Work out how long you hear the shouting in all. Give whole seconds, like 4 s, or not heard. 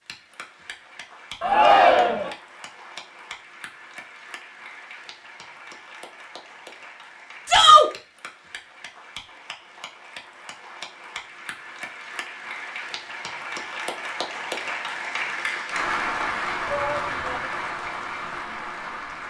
2 s.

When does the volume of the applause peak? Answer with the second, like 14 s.
16 s.